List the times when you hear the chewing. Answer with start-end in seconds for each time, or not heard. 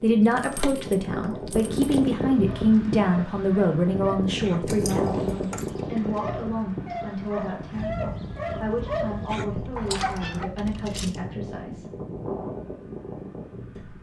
not heard.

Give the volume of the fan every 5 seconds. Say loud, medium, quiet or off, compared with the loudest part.
loud, loud, medium.